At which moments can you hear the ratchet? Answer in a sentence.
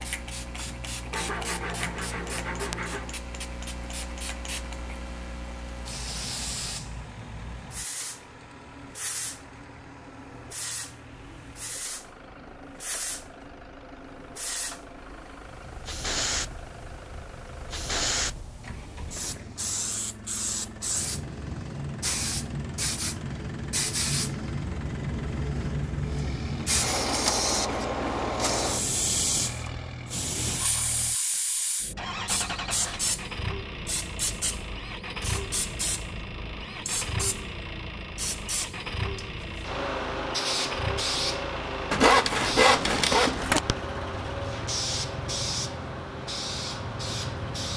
You can't hear the ratchet here.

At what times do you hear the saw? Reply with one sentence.
You can hear the saw from 1.1 to 3.1 s and from 41.9 to 43.8 s.